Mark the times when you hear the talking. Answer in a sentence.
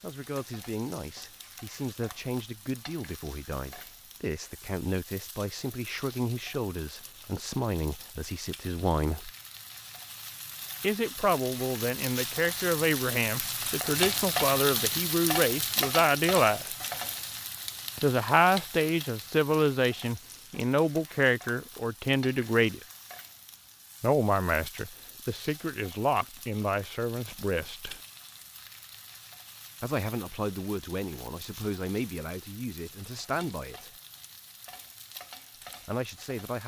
You can hear the talking from 0.0 to 9.3 s, from 10.8 to 16.8 s, from 18.0 to 22.8 s, from 24.0 to 28.0 s, from 29.8 to 33.9 s and from 35.9 to 36.6 s.